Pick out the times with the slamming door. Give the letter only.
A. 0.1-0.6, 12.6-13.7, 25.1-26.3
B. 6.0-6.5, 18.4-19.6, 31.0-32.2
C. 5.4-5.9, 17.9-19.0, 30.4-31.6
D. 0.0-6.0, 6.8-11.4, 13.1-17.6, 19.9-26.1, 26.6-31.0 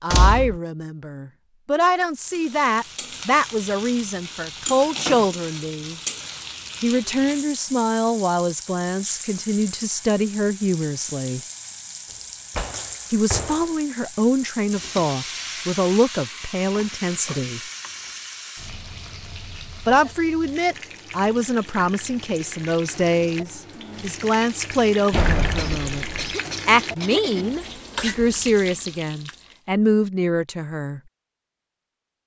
A.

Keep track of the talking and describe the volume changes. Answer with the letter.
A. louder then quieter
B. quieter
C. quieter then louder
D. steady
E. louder
D.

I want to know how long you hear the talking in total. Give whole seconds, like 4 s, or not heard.
26 s.